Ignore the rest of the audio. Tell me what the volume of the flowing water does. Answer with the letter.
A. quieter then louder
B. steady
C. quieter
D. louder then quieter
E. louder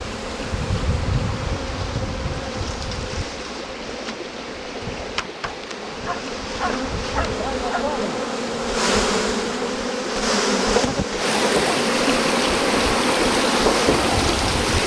E.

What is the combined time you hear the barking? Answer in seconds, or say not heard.
2 s.